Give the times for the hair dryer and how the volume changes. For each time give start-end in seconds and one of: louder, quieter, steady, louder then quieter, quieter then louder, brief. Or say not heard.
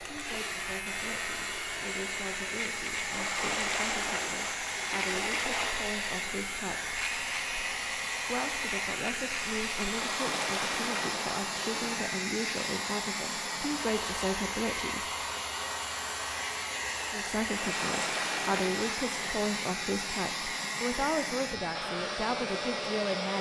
0.0-23.3 steady.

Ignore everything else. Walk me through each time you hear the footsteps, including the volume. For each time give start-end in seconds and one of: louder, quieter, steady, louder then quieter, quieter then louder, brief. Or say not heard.
not heard.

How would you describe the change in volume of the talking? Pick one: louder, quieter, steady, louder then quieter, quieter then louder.
louder.